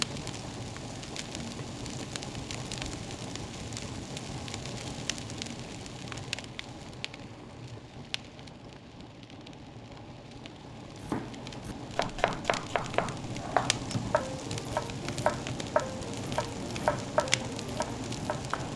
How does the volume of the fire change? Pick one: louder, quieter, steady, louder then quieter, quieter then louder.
quieter then louder.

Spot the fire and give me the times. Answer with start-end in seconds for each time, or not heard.
0.0-18.7.